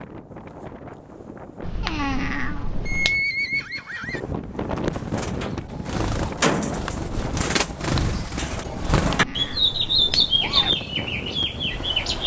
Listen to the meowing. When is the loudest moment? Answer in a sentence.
The volume of the meowing peaks at 2 seconds.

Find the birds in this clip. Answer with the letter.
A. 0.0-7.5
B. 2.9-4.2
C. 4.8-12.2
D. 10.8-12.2
C.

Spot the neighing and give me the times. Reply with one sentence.
The neighing can be heard from 2.9 to 4.2 s.